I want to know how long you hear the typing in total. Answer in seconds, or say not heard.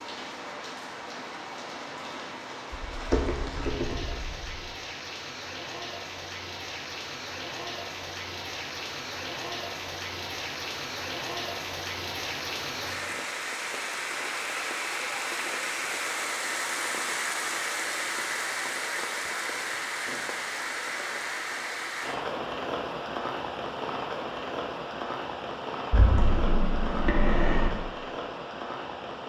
4 s.